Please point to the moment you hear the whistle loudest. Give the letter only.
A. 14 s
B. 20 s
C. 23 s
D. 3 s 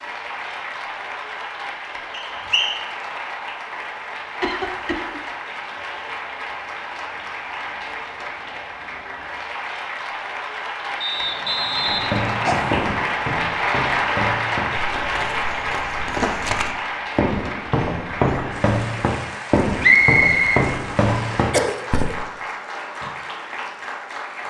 B.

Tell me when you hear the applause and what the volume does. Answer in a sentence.
The applause can be heard from 0.0 to 24.4 s, getting louder then quieter.